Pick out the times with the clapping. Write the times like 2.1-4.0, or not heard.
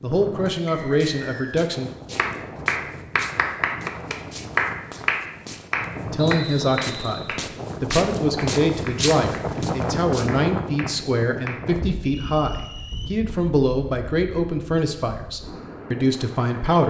2.1-11.7.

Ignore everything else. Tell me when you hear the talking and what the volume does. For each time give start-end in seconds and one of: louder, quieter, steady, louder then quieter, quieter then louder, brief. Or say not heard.
0.0-1.9 brief
6.0-16.8 steady.